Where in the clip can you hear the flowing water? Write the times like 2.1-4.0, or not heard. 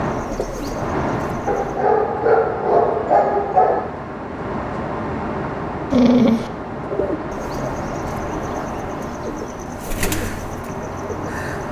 not heard.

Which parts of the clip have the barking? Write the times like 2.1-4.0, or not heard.
1.4-3.9, 5.9-6.5.